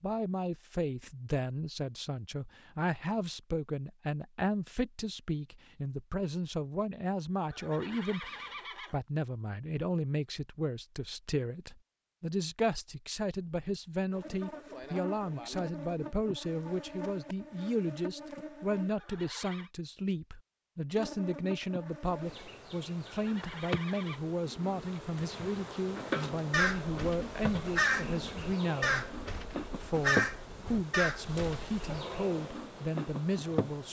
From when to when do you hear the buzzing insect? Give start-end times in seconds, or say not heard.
14.1-18.9, 20.9-33.8.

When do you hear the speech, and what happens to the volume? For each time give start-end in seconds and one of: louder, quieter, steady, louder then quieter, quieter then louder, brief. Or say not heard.
0.0-33.8 steady.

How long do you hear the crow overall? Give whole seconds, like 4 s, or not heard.
5 s.